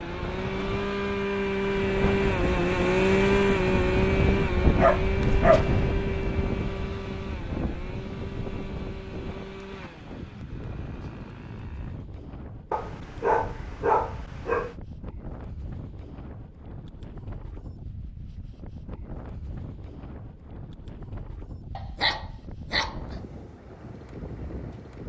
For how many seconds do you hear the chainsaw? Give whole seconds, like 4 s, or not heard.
12 s.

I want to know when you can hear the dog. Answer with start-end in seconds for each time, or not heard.
4.8-5.9, 12.7-14.8, 21.8-22.9.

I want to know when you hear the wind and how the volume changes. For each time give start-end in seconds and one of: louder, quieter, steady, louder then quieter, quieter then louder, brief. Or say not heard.
0.0-25.0 quieter.